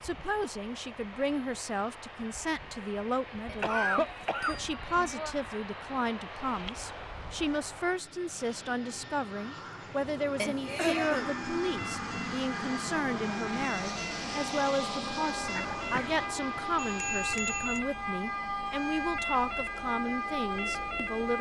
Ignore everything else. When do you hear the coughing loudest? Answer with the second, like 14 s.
4 s.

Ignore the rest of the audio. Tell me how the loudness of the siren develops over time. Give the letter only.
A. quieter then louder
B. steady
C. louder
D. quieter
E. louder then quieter
C.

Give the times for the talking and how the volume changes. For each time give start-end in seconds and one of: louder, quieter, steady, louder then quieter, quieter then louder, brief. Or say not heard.
0.0-21.3 steady.